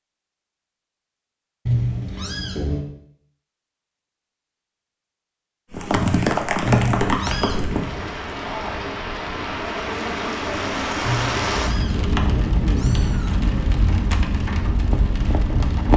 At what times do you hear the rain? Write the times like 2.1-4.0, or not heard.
5.7-15.9.